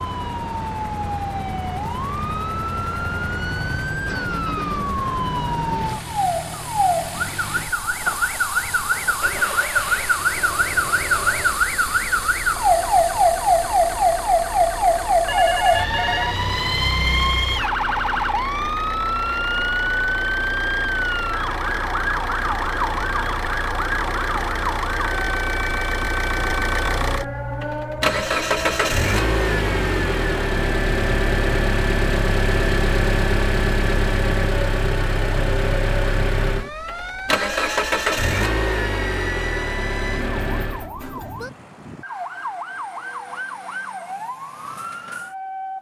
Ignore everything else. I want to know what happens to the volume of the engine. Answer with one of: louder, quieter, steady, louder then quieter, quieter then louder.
louder.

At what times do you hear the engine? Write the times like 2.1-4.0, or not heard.
0.0-40.9.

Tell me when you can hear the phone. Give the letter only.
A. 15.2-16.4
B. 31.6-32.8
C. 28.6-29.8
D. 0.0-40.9
A.